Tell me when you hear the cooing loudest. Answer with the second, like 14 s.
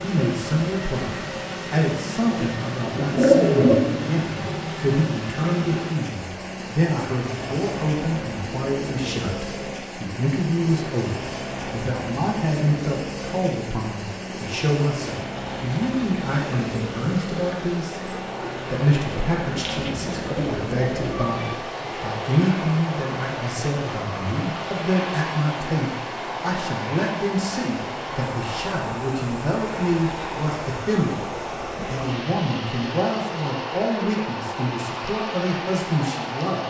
3 s.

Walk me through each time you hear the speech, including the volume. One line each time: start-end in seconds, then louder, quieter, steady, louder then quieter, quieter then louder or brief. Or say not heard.
0.0-36.6 steady.